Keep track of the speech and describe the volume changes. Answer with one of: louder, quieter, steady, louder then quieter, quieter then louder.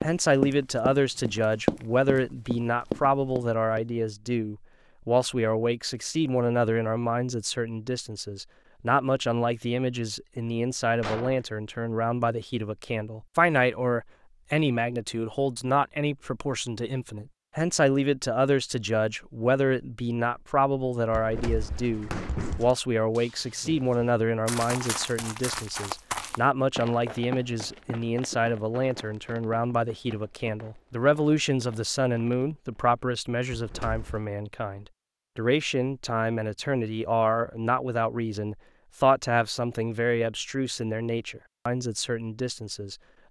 steady.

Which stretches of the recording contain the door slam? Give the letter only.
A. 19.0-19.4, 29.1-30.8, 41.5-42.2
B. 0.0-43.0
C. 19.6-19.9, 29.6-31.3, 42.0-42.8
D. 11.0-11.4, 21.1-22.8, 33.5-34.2
D.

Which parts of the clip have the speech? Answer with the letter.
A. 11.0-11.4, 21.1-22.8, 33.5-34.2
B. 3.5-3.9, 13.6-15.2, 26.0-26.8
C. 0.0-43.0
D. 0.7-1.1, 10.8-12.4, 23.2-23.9
C.